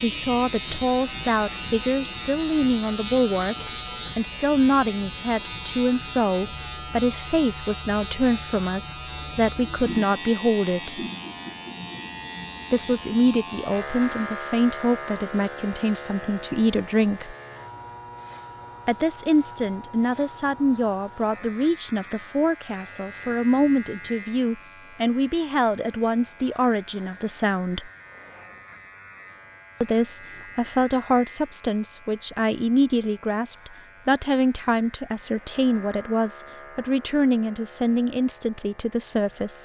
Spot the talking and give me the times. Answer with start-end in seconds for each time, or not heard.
0.0-11.0, 12.7-17.4, 18.9-27.9, 29.8-39.6.